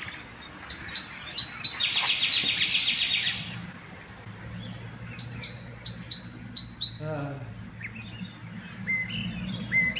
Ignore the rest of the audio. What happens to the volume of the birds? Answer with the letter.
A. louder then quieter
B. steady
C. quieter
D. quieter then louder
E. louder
C.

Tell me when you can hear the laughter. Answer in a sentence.
The laughter can be heard from 1.8 to 3.5 s and from 7.0 to 7.5 s.